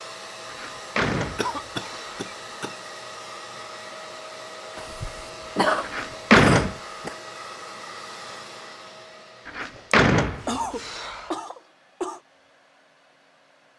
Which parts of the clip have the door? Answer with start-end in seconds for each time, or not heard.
0.5-2.3, 5.8-6.8, 9.4-11.3.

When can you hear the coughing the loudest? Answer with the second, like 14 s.
6 s.